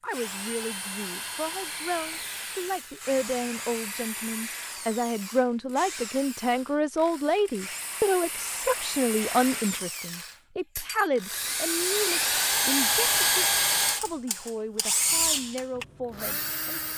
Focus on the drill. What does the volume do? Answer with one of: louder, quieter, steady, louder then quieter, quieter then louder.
louder.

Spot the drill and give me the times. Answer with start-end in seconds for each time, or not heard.
0.1-16.9.